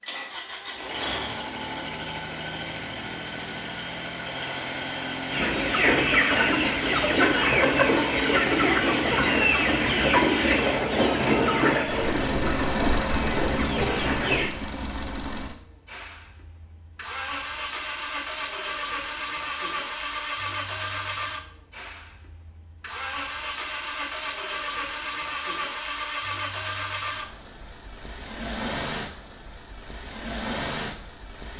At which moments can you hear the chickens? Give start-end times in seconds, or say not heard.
5.3-14.5.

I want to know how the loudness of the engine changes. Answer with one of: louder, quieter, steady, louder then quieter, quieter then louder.
steady.